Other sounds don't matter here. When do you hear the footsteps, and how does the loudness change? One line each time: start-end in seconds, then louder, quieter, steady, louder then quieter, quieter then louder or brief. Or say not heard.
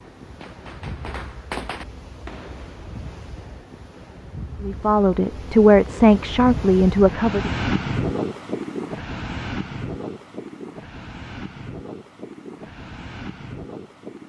not heard.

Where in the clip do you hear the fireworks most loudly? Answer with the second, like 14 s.
2 s.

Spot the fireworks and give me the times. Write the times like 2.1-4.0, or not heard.
0.0-3.8.